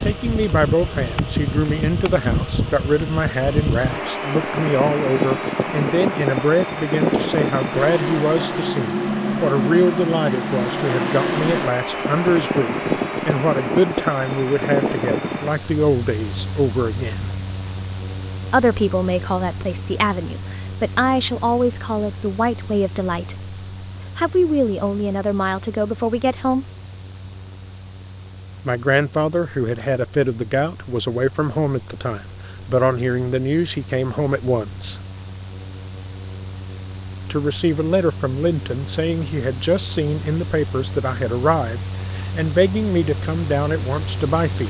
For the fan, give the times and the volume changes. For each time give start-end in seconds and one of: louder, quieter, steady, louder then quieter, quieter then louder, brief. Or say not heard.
0.0-44.6 quieter then louder.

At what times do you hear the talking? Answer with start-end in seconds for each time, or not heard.
0.0-17.3, 18.5-23.6, 24.1-26.6, 28.6-35.0, 37.3-44.6.